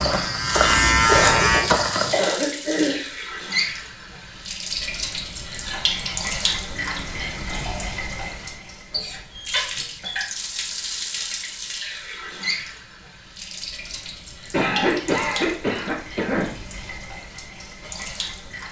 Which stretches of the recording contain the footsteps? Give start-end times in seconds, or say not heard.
0.0-2.2.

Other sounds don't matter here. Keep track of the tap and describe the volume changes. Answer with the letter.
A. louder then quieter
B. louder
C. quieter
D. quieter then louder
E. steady
C.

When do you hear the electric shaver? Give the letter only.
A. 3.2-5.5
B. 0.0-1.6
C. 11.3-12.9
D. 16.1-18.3
B.